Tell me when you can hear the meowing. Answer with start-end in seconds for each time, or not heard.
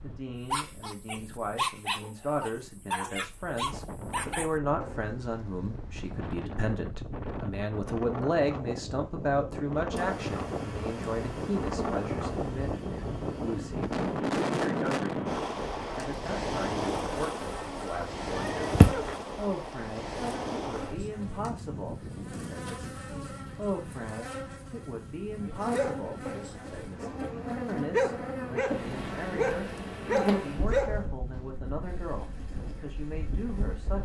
18.0-19.1.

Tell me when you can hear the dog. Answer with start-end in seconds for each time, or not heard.
0.5-6.3, 25.7-31.4.